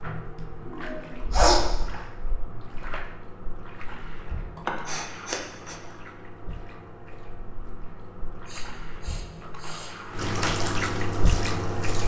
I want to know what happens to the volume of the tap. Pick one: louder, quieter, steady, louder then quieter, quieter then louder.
louder.